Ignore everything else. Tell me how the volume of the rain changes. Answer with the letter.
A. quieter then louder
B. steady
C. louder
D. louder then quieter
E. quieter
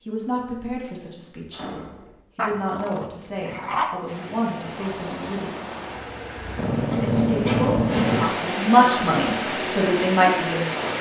C.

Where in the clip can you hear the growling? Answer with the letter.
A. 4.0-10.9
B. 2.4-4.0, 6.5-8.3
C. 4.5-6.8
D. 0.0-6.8
B.